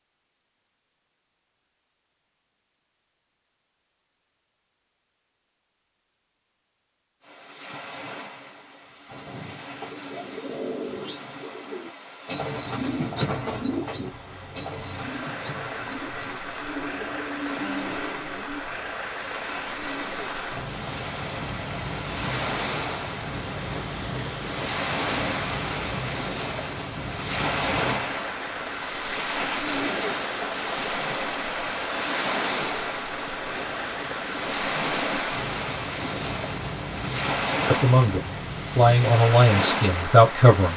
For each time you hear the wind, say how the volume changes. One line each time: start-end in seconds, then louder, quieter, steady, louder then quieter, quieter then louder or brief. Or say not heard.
7.2-40.7 louder.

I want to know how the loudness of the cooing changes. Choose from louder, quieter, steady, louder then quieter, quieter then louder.
louder then quieter.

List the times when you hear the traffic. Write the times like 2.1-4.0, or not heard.
13.9-40.7.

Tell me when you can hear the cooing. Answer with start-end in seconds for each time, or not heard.
9.1-18.6.